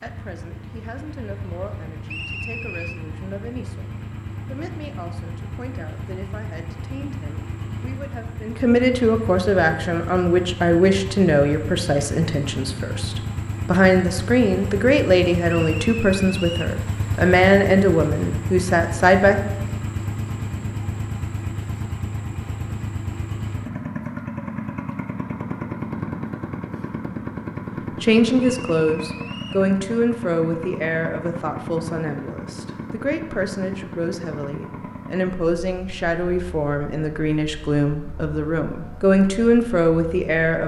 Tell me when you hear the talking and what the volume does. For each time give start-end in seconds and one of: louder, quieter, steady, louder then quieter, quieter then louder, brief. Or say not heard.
0.0-19.4 louder
28.0-40.6 quieter then louder.